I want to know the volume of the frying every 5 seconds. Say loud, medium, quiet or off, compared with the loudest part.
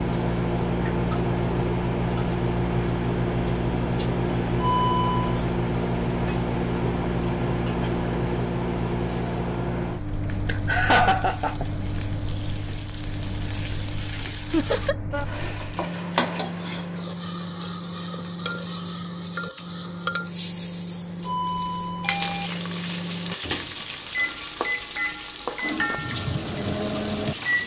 quiet, quiet, medium, loud, loud, loud.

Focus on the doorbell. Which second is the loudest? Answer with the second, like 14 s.
5 s.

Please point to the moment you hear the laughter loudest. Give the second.
11 s.